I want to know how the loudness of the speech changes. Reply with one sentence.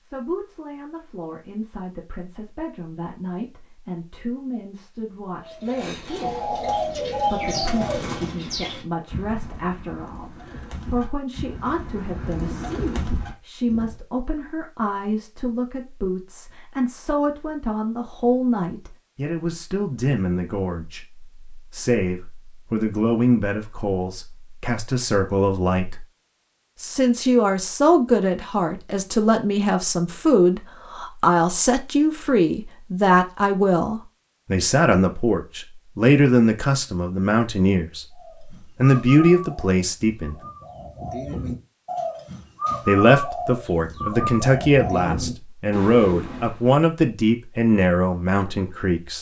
The loudness of the speech goes up.